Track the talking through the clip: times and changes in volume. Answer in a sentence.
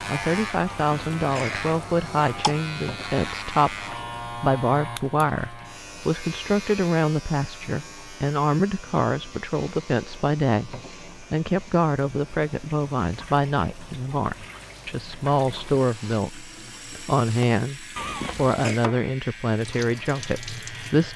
You can hear the talking from 0.1 to 21.1 s, at a steady volume.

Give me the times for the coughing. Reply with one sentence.
The coughing can be heard from 0.7 to 2.5 s and from 17.9 to 18.8 s.